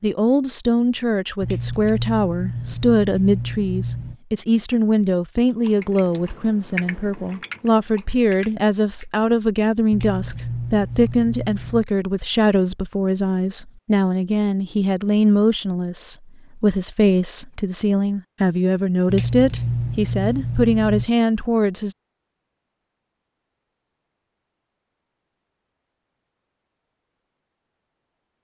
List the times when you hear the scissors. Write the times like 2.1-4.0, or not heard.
1.4-4.2, 9.9-11.8, 19.1-21.1.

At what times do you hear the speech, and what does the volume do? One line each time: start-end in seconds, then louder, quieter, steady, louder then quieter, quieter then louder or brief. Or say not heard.
0.0-21.9 steady.